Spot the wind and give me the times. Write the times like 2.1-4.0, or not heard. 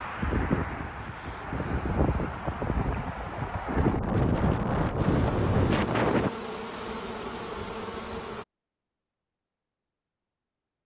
0.0-6.3.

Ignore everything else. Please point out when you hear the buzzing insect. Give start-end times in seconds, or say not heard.
5.0-8.4.